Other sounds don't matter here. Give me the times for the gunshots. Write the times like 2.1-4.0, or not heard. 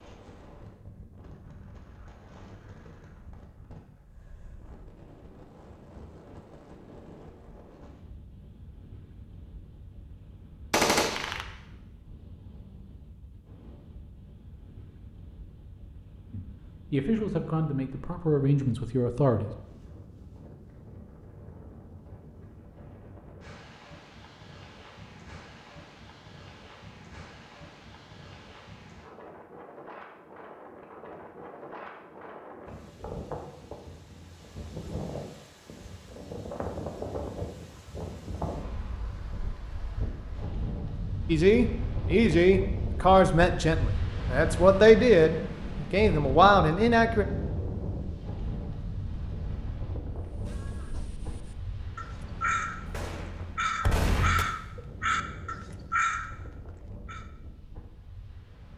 10.7-11.4, 52.9-54.5.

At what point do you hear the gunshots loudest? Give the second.
11 s.